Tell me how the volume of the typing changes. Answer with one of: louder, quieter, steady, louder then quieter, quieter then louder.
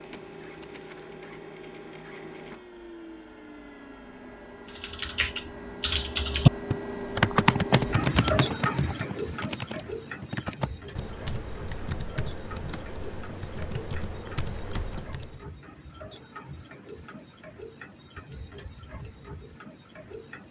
quieter.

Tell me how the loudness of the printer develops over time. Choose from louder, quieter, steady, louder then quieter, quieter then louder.
louder then quieter.